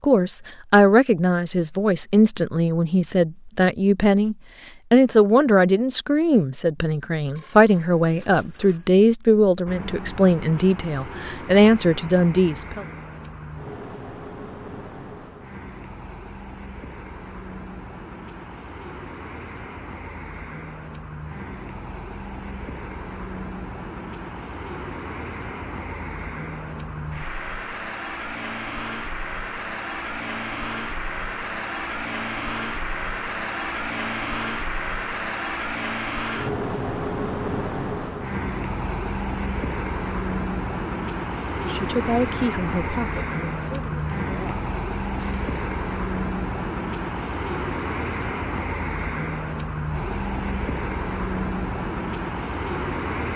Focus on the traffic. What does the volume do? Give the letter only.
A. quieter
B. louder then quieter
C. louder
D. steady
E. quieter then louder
C.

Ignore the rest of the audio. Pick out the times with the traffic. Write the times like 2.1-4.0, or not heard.
9.7-53.3.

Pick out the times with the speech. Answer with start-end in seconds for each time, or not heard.
0.0-12.8, 41.5-44.7.